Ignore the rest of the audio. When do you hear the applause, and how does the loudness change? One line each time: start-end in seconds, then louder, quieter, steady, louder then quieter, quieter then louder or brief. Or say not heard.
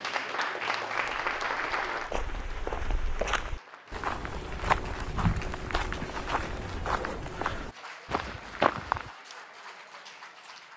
0.0-10.7 quieter.